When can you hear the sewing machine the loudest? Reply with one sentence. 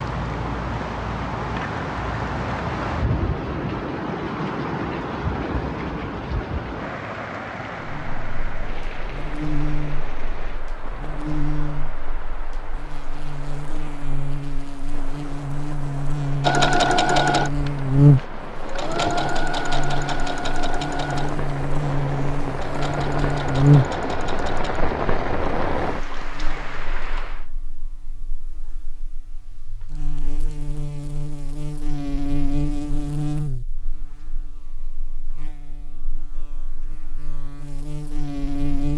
The loudest moment of the sewing machine is at 17 seconds.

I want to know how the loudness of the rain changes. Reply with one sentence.
The volume of the rain goes down, then up.